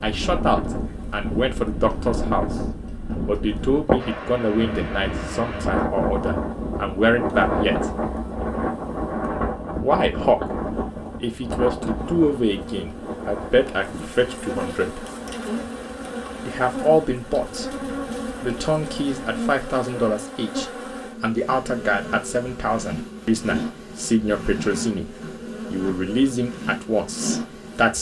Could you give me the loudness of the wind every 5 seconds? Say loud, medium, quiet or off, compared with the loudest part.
loud, loud, medium, quiet, off, off.